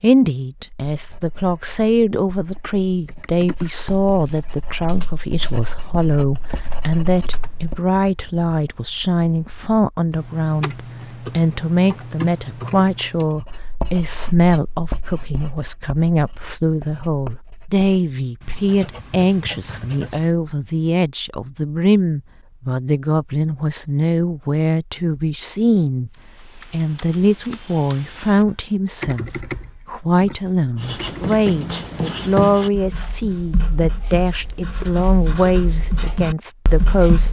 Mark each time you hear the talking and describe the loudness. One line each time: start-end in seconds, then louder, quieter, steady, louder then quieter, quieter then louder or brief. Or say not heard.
0.0-37.2 steady.